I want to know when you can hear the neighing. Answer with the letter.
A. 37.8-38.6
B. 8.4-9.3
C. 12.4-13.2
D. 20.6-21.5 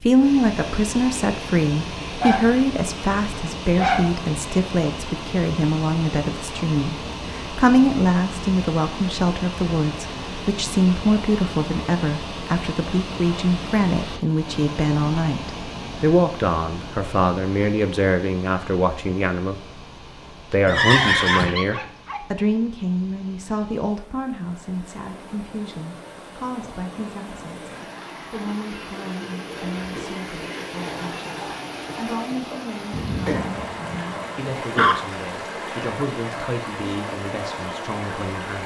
D.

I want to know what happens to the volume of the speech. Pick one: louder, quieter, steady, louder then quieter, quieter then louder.
quieter.